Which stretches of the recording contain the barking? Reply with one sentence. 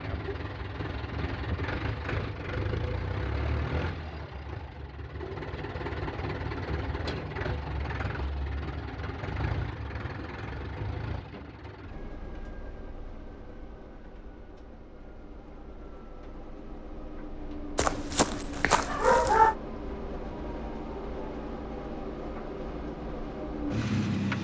The barking can be heard from 17.8 to 19.6 s.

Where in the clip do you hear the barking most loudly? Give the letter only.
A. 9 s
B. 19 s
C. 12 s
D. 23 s
B.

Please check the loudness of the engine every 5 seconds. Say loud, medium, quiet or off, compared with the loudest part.
loud, loud, medium, medium, loud.